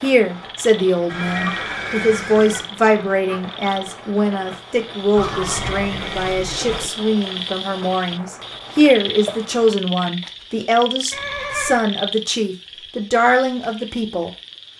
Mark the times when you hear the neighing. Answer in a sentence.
You can hear the neighing from 1.1 to 2.7 s, from 5.2 to 6.9 s and from 11.1 to 11.8 s.